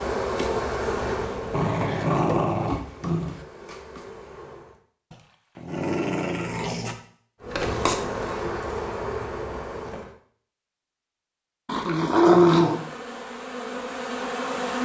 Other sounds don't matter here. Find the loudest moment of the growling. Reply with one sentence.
The loudest moment of the growling is at 12 seconds.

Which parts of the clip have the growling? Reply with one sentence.
The growling can be heard from 1.5 to 3.4 s, from 5.1 to 7.0 s and from 11.7 to 12.8 s.